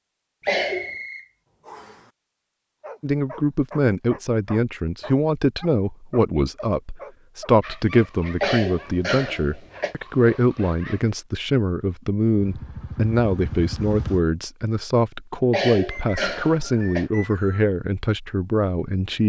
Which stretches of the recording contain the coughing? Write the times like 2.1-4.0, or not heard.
0.5-0.9, 8.4-9.9, 15.5-17.1.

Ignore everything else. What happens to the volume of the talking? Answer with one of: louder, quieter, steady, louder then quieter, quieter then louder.
steady.